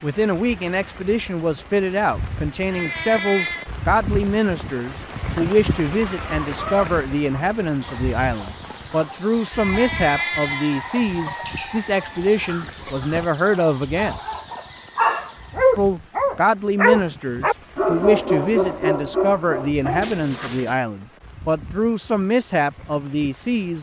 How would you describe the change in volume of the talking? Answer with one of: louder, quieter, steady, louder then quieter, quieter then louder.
steady.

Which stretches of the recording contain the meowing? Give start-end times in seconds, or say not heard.
1.9-3.7, 8.7-10.8, 20.0-20.8.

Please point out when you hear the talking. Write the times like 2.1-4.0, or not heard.
0.0-14.2, 15.8-23.7.